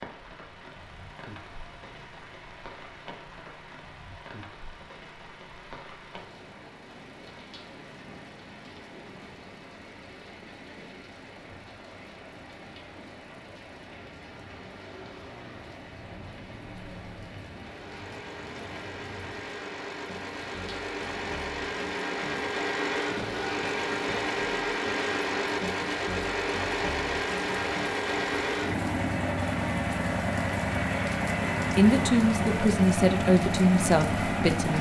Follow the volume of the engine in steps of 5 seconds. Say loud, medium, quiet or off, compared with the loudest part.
quiet, quiet, quiet, quiet, loud, loud, loud.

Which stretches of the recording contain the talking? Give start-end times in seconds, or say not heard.
31.8-34.7.